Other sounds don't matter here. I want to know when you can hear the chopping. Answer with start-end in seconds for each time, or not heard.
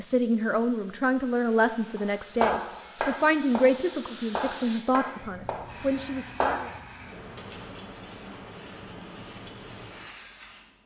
1.9-6.7.